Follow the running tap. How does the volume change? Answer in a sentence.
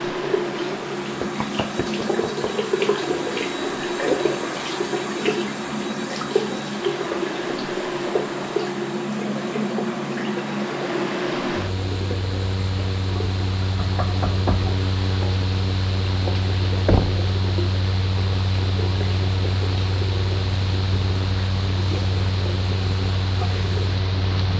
The volume of the running tap goes down.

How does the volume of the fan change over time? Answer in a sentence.
The loudness of the fan stays about the same.